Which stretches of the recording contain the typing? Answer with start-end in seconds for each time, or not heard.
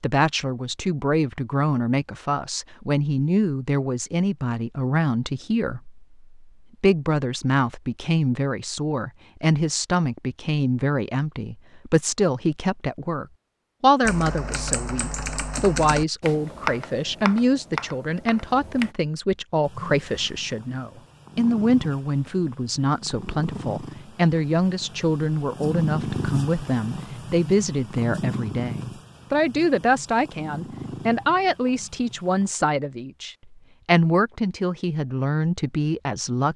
14.0-18.9.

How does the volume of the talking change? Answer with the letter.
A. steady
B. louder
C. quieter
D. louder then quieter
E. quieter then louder
A.